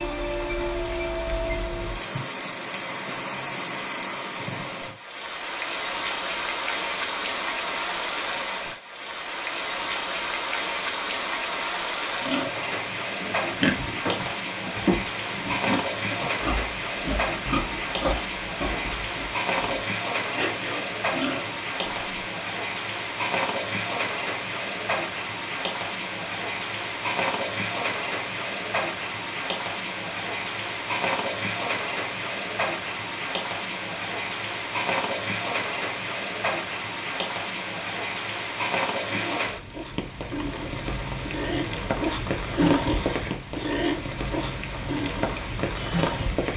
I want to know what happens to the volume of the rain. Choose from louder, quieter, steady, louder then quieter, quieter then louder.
steady.